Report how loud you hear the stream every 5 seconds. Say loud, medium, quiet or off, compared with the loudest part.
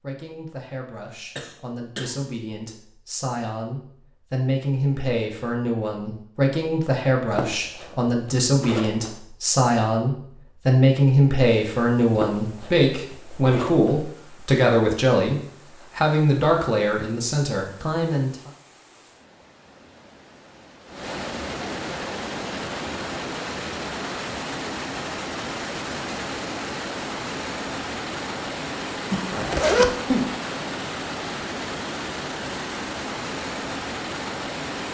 off, off, quiet, quiet, loud, loud, loud.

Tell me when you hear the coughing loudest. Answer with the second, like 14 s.
30 s.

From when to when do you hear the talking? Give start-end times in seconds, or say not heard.
0.0-18.5.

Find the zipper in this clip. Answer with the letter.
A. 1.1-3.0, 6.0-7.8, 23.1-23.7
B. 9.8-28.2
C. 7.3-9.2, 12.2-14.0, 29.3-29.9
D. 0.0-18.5
C.